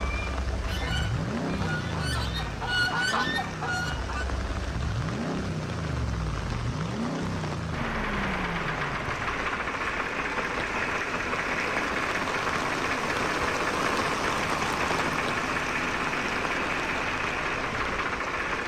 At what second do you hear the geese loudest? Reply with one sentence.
The volume of the geese peaks at 3 seconds.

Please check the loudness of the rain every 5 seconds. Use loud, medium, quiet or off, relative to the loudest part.
medium, medium, loud, loud.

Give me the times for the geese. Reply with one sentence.
You can hear the geese from 0.0 to 4.2 s.